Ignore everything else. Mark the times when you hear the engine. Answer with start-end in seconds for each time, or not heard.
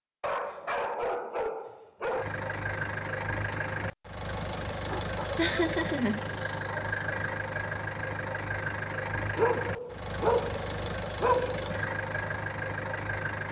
2.1-13.4.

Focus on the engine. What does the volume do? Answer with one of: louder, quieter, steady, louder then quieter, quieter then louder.
steady.